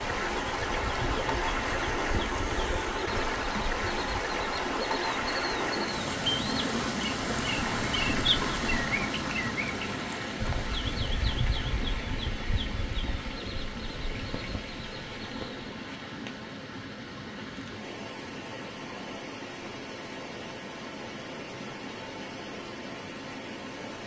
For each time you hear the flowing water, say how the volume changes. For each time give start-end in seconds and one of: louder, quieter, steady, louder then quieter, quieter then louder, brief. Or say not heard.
0.0-24.0 quieter.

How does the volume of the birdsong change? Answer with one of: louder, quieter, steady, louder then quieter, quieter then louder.
louder then quieter.